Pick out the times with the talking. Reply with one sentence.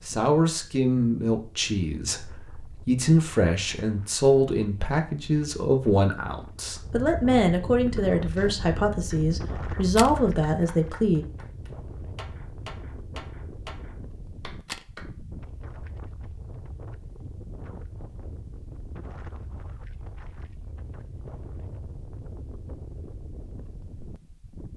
You can hear the talking from 0.1 to 11.2 s.